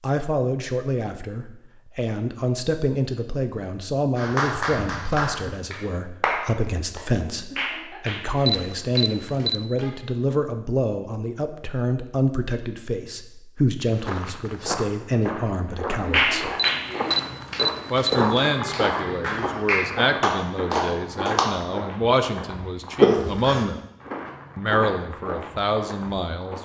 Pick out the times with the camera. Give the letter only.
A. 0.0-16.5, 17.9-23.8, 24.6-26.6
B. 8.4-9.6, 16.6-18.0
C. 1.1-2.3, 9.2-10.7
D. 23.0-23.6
B.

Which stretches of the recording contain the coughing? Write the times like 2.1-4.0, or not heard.
23.0-23.6.